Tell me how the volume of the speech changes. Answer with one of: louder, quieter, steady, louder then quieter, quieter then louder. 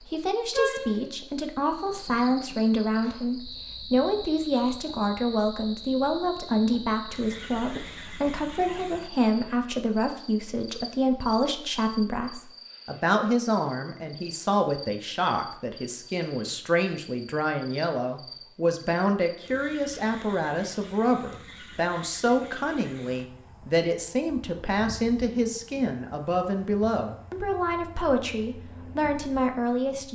steady.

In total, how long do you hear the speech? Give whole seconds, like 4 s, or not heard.
30 s.